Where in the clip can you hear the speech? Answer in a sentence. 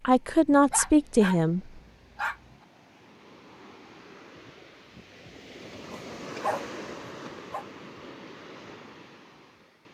You can hear the speech from 0.1 to 1.7 s.